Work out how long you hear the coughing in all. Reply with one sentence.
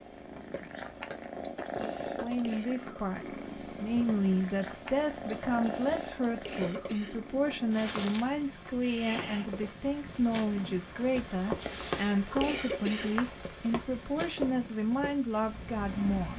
The coughing can be heard for 4 seconds in total.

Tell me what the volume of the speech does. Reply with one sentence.
The volume of the speech stays about the same.